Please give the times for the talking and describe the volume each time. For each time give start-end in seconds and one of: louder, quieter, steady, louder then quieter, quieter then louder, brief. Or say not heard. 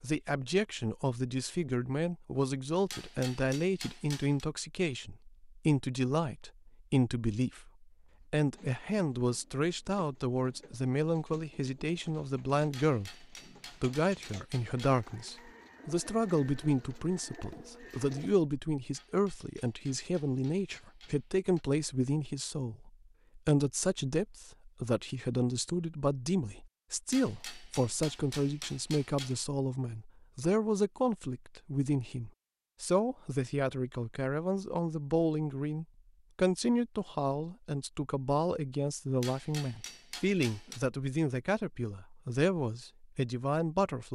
0.0-44.1 steady.